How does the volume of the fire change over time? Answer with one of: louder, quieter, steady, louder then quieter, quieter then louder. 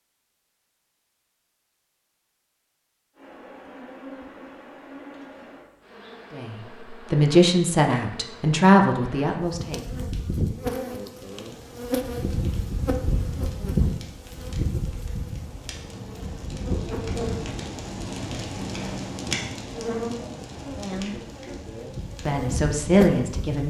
louder then quieter.